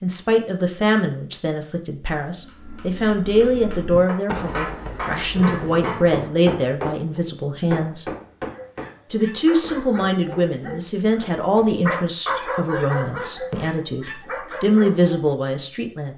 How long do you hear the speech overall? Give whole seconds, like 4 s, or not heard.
15 s.